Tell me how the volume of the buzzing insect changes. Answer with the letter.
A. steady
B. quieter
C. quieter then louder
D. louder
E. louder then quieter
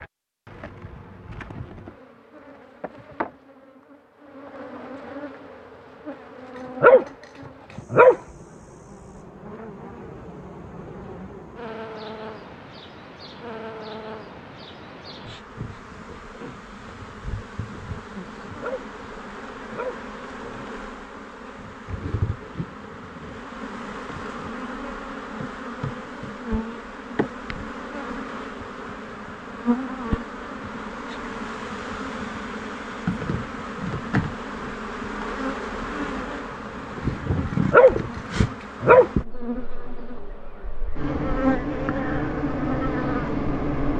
D.